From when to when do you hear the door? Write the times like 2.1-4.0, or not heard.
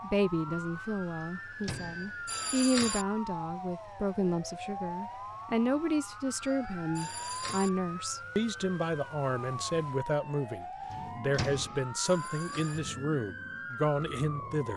1.2-2.1, 10.9-11.8.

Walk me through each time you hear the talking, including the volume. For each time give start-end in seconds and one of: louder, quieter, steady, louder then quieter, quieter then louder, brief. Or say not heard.
0.0-14.7 steady.